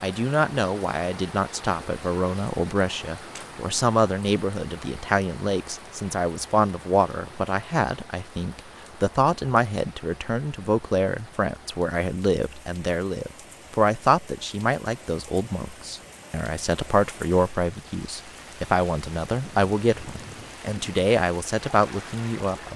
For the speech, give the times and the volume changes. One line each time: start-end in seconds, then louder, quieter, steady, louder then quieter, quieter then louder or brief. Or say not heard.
0.0-22.7 steady.